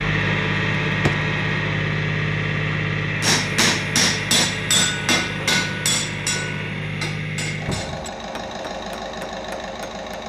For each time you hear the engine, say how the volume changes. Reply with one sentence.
You can hear the engine from 0.0 to 10.2 s, getting quieter.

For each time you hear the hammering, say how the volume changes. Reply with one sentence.
The hammering can be heard from 3.2 to 10.0 s, getting quieter.